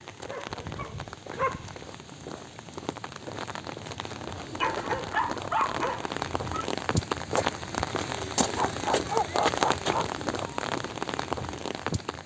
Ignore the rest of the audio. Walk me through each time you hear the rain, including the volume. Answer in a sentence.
You can hear the rain from 0.0 to 12.2 s, getting louder.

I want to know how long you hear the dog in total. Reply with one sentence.
The dog can be heard for 5 seconds in total.